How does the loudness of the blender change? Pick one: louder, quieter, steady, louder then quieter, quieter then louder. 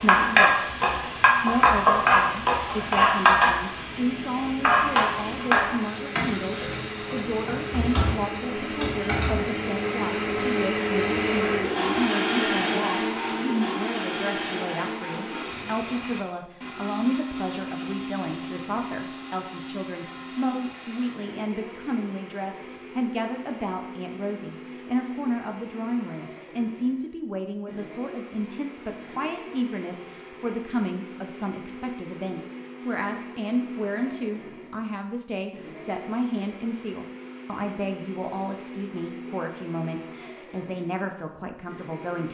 quieter.